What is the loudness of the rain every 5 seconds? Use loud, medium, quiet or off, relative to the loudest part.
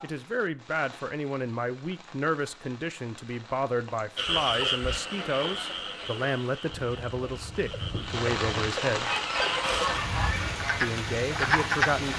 quiet, loud, loud.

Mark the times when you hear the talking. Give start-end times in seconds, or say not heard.
0.0-9.1, 10.8-12.1.